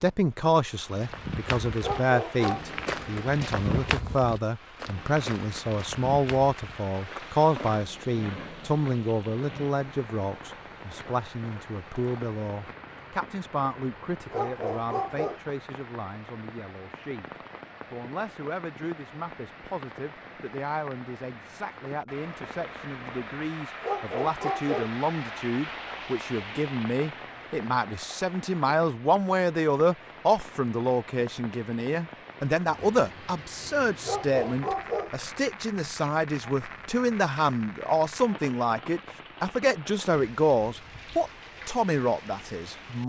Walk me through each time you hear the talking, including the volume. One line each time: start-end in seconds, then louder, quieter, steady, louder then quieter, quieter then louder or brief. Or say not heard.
0.0-17.3 quieter
17.9-43.0 louder.